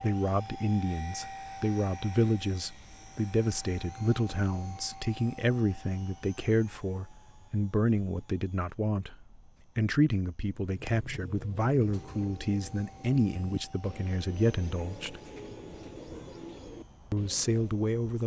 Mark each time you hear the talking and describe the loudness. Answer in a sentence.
You can hear the talking from 0.0 to 15.2 s, at a steady volume; and briefly from 17.1 to 18.2 s.